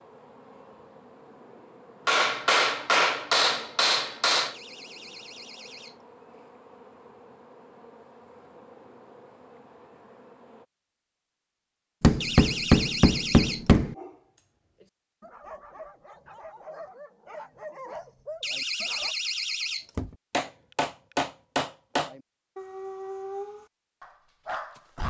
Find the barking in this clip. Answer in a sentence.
The barking can be heard from 13.9 to 19.1 s and from 21.9 to 25.0 s.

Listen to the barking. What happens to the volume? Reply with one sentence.
The loudness of the barking goes up.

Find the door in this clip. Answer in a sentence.
The door can be heard from 4.5 to 6.0 s, from 12.2 to 13.9 s and from 18.4 to 20.1 s.